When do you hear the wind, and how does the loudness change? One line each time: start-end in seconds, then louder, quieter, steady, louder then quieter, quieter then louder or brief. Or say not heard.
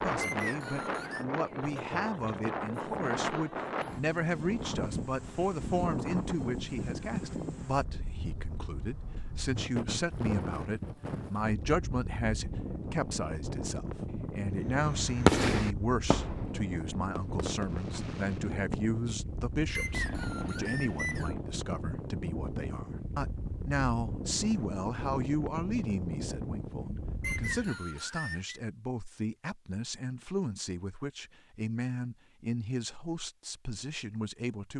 0.0-27.8 steady.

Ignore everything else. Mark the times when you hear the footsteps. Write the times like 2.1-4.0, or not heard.
not heard.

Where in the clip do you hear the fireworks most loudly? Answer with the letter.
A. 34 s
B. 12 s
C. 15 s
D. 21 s
C.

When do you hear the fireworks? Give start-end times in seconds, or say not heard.
14.6-18.9, 19.9-21.2.